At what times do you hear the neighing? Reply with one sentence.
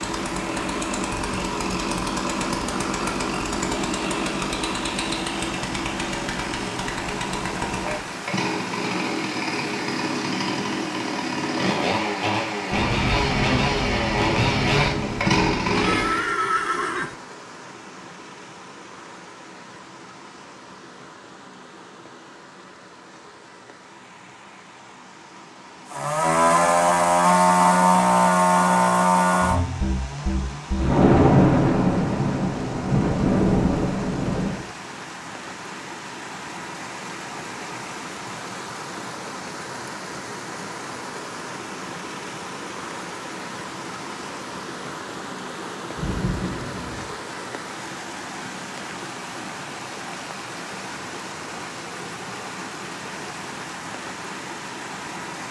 The neighing can be heard from 15.7 to 17.1 s.